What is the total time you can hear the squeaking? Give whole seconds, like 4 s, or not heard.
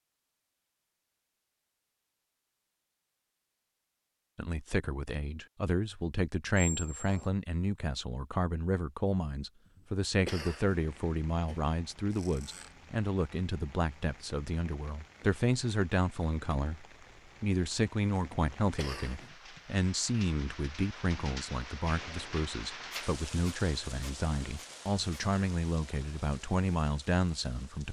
4 s.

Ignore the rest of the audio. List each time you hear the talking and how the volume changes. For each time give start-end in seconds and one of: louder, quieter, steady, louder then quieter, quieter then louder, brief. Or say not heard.
4.3-27.8 steady.